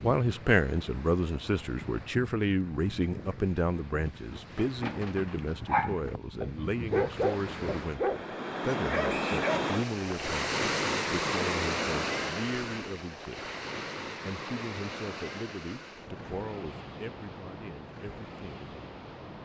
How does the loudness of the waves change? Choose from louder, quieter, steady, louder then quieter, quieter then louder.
louder then quieter.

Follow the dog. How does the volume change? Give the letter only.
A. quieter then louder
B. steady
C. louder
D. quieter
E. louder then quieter
E.